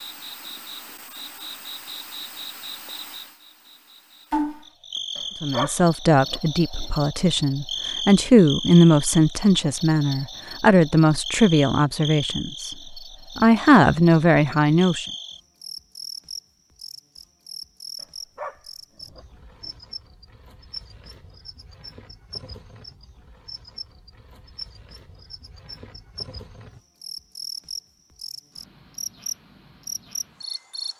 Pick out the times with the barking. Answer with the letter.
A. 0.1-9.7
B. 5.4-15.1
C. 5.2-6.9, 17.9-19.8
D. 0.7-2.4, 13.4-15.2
C.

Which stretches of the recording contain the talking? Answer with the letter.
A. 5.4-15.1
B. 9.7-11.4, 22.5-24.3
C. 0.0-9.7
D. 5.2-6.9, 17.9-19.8
A.